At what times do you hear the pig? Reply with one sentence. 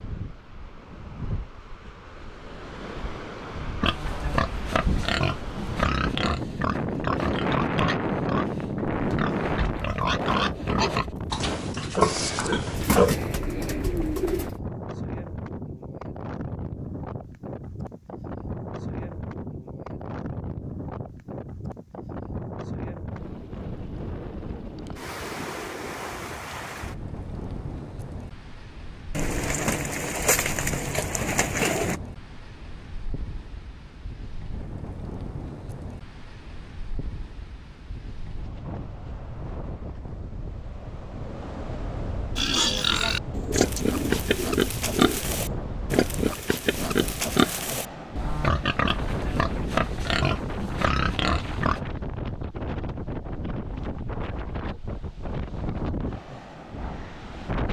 The pig can be heard from 3.8 to 13.2 s and from 42.4 to 51.8 s.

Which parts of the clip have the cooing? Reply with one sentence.
You can hear the cooing from 12.7 to 14.6 s, from 29.1 to 32.0 s and from 43.3 to 45.2 s.